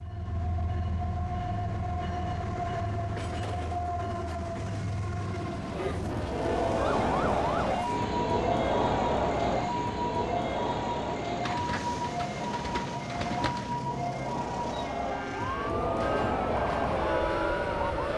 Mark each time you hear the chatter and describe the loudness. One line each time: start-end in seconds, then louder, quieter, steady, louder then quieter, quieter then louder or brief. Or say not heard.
5.5-18.1 quieter then louder.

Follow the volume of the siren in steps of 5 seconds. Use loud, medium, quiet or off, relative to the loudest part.
off, loud, loud, loud.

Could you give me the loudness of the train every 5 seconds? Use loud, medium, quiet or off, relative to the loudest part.
loud, loud, loud, medium.